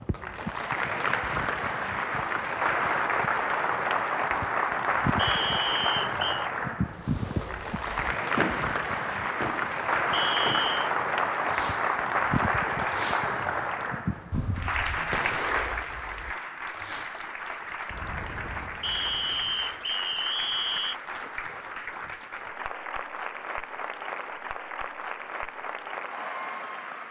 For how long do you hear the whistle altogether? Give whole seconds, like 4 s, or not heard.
4 s.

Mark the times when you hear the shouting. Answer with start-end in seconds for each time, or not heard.
not heard.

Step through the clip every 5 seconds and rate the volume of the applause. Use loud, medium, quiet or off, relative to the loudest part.
loud, loud, loud, medium, medium, medium.